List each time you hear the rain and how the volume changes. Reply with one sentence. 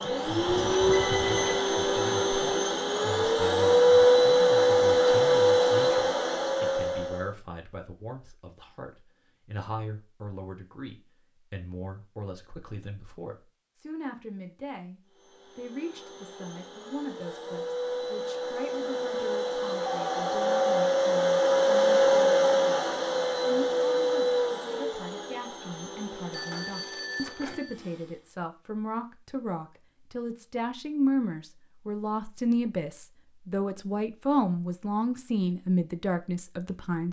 You can't hear the rain here.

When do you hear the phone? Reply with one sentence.
The phone can be heard from 0.5 to 1.6 s, from 19.9 to 20.9 s and from 26.3 to 27.8 s.